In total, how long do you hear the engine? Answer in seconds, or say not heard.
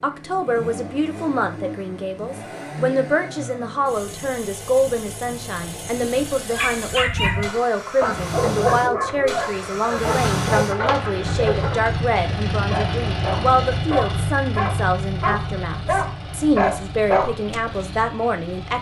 19 s.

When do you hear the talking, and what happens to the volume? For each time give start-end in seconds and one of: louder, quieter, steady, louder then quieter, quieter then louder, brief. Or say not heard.
0.0-18.7 steady.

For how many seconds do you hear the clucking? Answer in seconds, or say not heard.
2 s.